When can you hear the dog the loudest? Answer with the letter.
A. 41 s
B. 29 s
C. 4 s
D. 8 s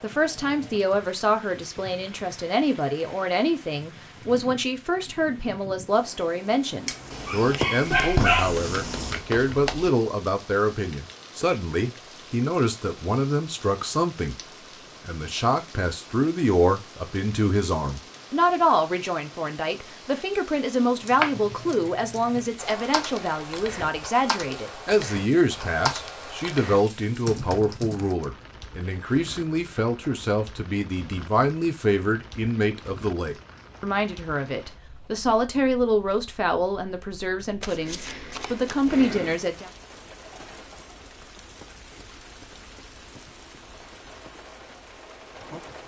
D.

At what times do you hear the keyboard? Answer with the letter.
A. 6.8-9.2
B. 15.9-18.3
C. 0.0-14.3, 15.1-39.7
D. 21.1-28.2
D.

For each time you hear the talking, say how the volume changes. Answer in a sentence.
The talking can be heard from 0.0 to 14.3 s, at a steady volume; and from 15.1 to 39.7 s, at a steady volume.